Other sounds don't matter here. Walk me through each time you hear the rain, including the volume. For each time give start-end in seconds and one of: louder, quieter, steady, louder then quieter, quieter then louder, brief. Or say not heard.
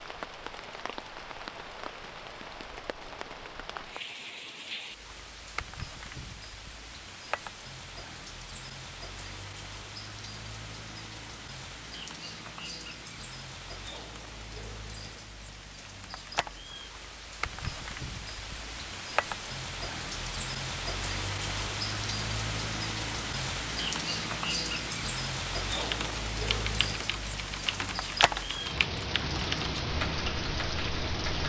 0.0-31.4 louder.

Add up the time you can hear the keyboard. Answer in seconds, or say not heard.
6 s.